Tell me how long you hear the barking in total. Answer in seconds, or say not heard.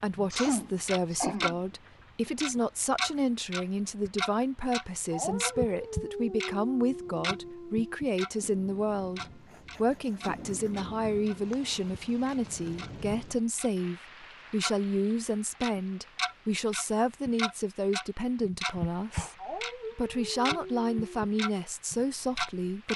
5 s.